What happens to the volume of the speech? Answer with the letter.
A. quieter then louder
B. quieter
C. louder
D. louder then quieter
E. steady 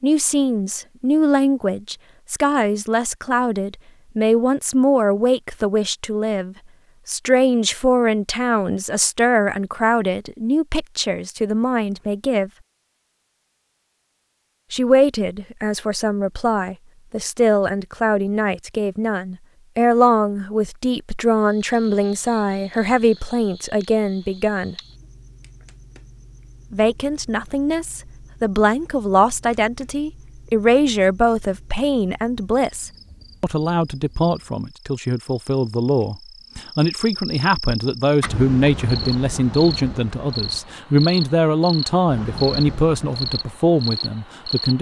E.